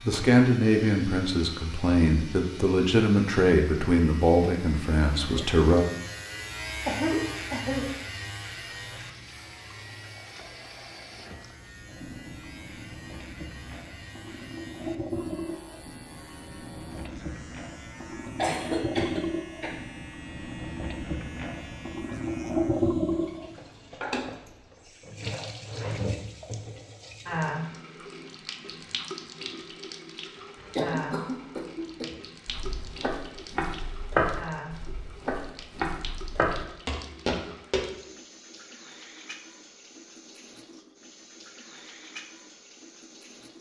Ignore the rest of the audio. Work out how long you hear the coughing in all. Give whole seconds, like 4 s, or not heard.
4 s.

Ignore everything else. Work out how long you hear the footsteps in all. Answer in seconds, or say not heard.
6 s.